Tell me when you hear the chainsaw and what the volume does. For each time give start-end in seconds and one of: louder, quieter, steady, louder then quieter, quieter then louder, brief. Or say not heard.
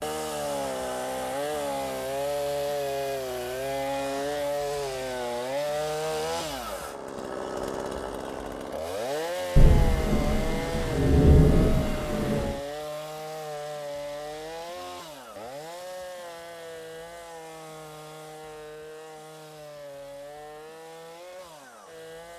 0.0-22.3 quieter.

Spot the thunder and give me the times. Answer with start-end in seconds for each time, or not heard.
9.6-12.6.